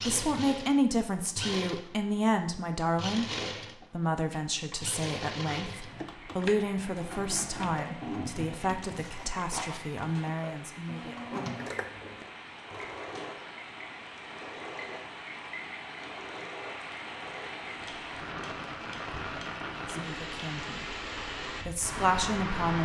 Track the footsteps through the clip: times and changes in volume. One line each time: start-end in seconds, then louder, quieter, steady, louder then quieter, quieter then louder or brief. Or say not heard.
not heard.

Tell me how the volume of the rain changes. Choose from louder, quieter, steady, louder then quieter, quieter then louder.
louder.